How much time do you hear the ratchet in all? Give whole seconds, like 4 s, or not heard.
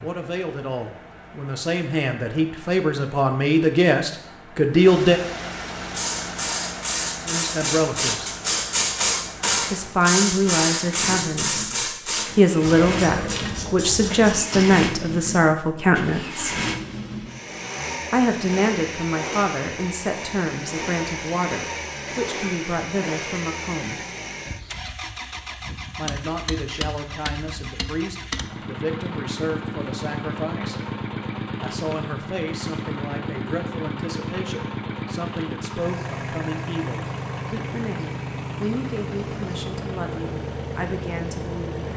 9 s.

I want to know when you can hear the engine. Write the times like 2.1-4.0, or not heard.
0.0-41.9.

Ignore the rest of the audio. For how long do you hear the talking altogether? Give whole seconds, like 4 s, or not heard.
34 s.